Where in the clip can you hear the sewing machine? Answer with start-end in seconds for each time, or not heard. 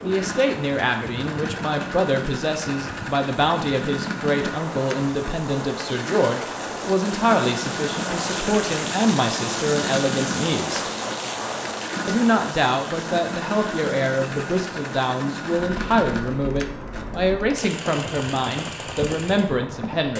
0.0-20.1.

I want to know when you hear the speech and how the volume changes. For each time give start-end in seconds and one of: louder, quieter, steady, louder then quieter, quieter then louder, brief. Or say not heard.
0.0-10.8 steady
12.1-20.1 steady.